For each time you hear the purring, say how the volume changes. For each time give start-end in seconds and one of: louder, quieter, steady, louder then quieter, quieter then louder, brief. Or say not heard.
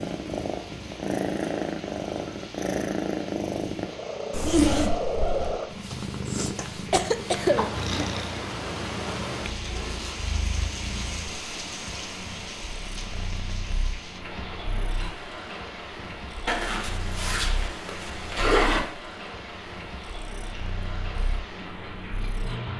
0.0-22.7 quieter.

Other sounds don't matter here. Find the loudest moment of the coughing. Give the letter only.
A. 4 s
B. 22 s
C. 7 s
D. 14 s
C.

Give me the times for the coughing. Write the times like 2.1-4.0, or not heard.
6.2-8.1.